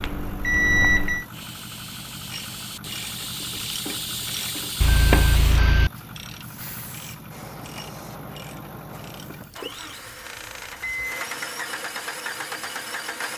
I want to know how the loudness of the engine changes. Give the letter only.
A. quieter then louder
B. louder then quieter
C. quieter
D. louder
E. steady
D.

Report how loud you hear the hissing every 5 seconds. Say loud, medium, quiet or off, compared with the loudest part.
loud, medium, quiet.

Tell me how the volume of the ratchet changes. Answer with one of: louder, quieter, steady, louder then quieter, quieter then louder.
louder then quieter.